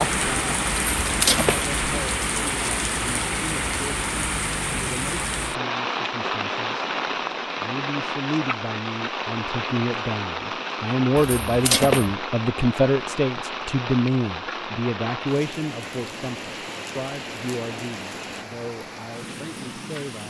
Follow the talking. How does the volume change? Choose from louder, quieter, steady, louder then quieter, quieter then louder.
louder then quieter.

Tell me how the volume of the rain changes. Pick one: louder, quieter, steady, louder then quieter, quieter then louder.
quieter.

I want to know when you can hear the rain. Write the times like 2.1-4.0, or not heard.
0.0-20.2.